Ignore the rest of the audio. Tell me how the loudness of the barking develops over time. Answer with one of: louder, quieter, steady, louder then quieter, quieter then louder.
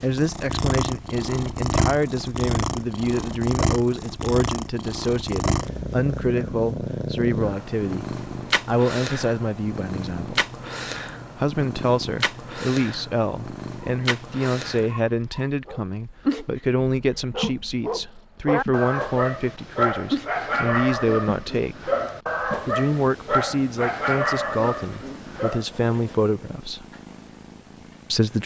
louder.